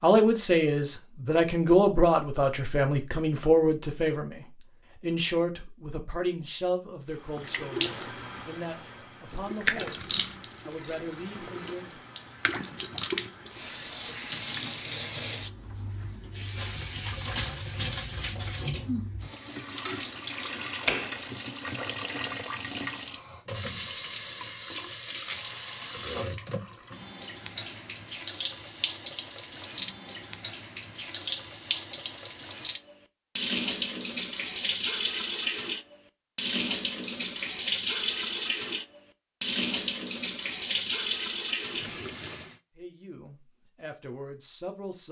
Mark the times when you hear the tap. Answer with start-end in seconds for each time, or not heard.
7.2-42.6.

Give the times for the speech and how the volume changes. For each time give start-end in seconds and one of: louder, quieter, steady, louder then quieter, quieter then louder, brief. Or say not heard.
0.0-12.0 quieter
42.8-45.0 brief.